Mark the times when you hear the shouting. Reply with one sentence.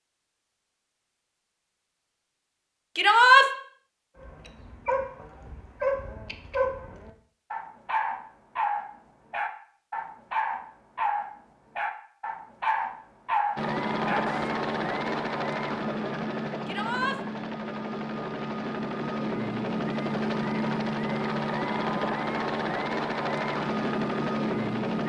You can hear the shouting from 3.0 to 3.5 s and from 16.6 to 17.2 s.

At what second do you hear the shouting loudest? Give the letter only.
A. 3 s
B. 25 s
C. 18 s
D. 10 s
A.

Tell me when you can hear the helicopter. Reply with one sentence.
You can hear the helicopter from 13.6 to 25.0 s.